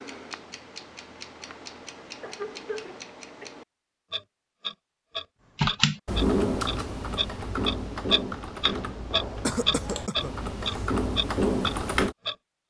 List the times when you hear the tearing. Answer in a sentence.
The tearing can't be heard in this clip.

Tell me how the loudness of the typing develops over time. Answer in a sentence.
The volume of the typing goes down, then up.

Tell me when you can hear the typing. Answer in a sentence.
You can hear the typing from 5.5 to 12.2 s.